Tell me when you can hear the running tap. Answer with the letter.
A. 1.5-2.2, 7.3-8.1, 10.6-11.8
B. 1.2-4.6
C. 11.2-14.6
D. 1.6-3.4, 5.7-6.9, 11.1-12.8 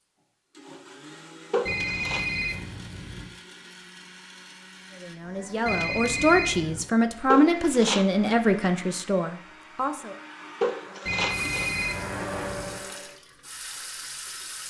C.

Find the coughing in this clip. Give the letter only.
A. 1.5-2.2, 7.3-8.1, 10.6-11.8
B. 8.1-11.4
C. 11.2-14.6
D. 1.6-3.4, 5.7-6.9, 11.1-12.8
A.